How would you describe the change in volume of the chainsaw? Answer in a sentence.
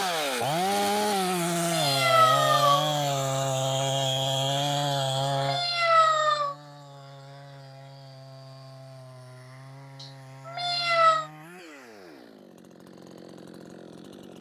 The volume of the chainsaw goes down.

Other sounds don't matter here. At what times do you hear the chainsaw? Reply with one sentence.
You can hear the chainsaw from 0.0 to 14.3 s.